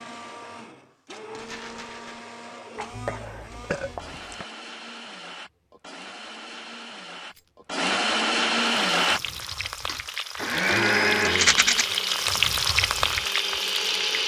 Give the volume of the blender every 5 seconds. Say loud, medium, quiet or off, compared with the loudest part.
quiet, loud, loud.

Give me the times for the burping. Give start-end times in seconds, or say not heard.
2.8-4.5, 10.5-11.7.